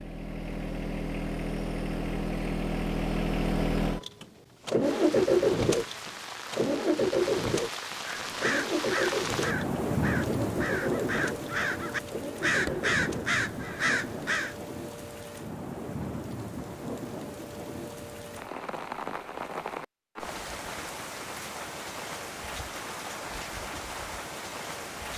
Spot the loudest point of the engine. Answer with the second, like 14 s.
5 s.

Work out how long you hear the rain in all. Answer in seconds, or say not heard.
20 s.